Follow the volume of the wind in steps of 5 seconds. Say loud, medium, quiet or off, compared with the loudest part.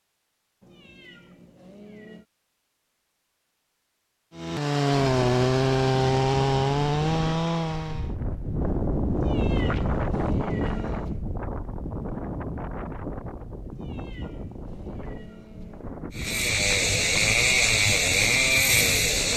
off, loud, loud, medium.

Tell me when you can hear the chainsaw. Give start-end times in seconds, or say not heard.
4.3-8.2, 16.1-19.3.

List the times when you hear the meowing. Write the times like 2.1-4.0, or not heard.
0.6-2.2, 9.2-11.2, 13.7-16.0.